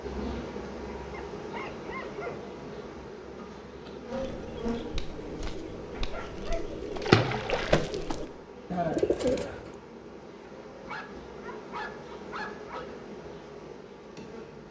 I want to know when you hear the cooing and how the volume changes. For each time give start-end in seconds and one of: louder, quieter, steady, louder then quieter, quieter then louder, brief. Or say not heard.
3.9-9.7 louder.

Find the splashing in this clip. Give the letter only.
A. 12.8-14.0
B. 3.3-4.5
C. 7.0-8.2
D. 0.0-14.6
C.